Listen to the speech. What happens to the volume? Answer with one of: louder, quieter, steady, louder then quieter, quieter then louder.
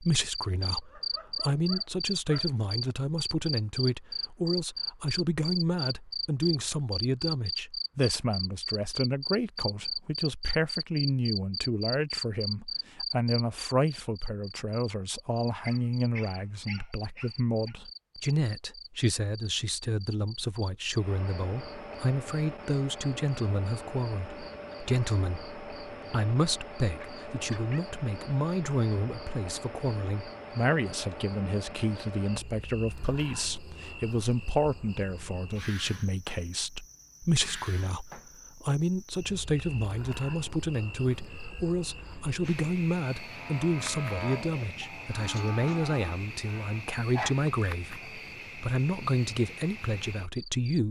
steady.